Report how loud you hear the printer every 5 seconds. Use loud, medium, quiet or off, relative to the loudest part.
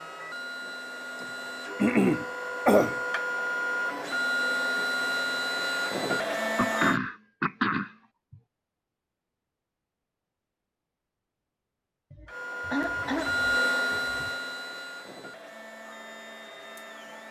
loud, loud, loud, quiet.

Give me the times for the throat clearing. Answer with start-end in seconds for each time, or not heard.
1.8-3.0, 6.5-7.9, 12.1-14.3.